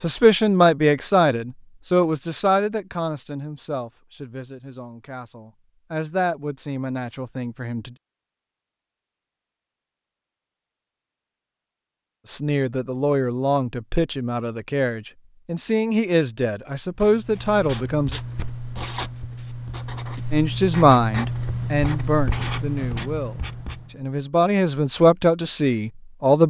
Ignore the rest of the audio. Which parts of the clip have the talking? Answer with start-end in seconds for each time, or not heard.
0.0-8.0, 12.2-18.2, 20.3-26.4.